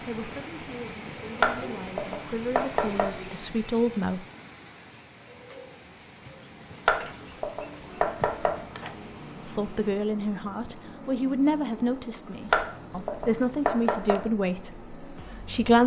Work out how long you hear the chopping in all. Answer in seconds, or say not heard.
5 s.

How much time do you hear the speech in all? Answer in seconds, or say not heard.
11 s.